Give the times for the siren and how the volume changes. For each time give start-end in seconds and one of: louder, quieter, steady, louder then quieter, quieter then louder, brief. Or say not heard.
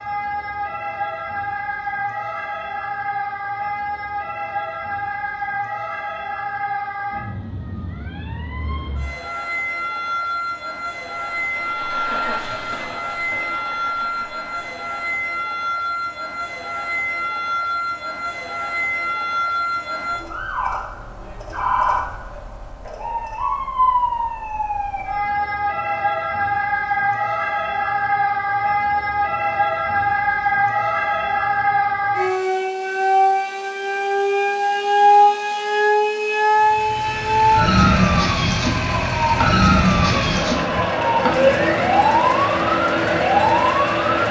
0.0-44.2 louder.